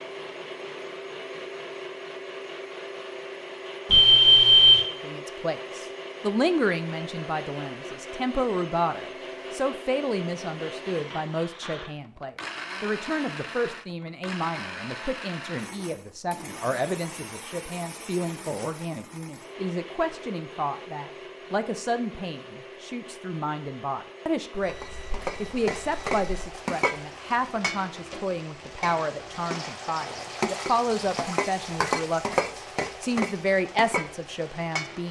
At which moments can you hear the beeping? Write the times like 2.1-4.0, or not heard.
3.9-4.8, 24.5-26.2.